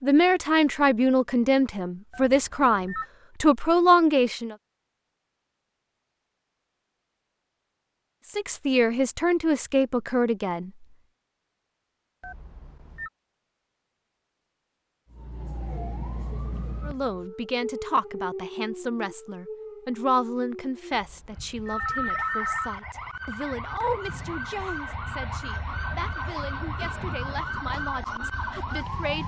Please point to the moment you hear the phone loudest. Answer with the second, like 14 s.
22 s.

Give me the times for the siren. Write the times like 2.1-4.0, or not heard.
15.1-29.2.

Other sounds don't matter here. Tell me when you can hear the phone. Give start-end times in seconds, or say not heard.
2.1-3.0, 12.2-13.1, 20.9-22.8.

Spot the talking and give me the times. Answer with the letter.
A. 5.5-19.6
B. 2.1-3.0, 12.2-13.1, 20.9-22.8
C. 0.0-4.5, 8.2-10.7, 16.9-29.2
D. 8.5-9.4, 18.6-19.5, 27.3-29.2
C.